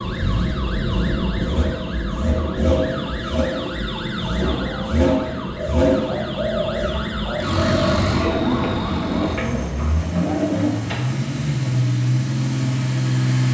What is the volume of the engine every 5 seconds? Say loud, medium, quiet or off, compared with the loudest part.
medium, loud, loud.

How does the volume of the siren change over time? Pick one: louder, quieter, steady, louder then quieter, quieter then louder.
steady.